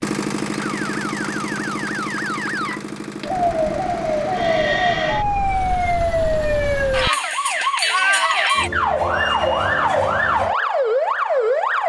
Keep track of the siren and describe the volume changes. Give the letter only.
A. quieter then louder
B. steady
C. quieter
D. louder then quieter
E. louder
E.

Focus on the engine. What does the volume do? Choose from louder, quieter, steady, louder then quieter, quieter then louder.
quieter.